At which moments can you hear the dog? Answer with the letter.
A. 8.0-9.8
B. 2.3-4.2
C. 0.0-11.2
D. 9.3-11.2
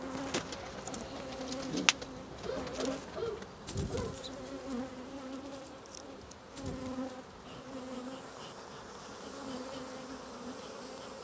B.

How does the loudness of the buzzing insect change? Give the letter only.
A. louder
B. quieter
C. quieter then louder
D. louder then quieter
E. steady
E.